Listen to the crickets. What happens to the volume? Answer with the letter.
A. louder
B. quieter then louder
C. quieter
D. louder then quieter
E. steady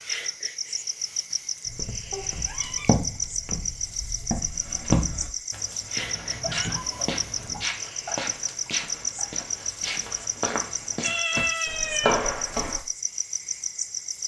E.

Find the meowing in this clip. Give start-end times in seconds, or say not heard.
2.1-3.0, 6.0-7.7, 11.0-12.2.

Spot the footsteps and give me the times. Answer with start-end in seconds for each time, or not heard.
1.6-12.8.